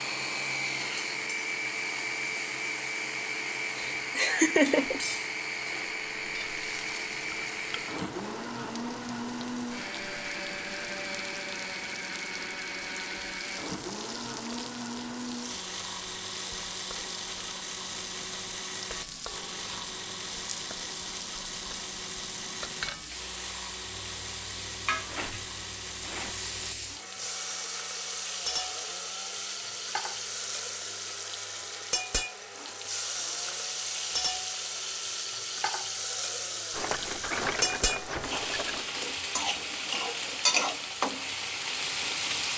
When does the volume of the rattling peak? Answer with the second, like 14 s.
37 s.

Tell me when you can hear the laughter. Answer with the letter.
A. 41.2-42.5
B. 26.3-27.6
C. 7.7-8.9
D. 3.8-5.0
D.